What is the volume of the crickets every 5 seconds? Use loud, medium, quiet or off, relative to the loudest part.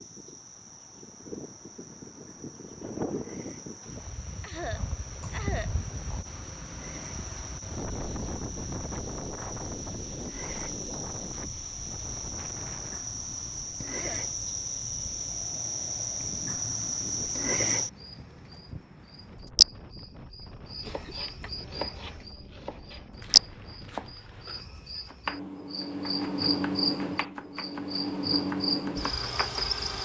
quiet, quiet, medium, loud, loud, loud.